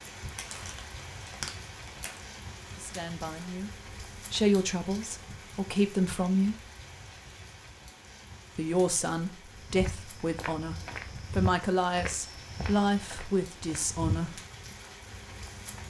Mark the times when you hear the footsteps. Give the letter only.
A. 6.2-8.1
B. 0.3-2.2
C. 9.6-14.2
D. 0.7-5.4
C.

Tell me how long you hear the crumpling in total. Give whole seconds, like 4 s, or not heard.
2 s.